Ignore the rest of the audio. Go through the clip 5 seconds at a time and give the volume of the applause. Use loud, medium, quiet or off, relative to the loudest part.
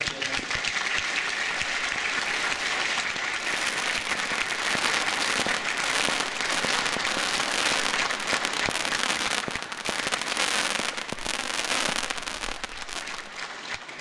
loud, loud, medium.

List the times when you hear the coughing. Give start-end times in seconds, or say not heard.
not heard.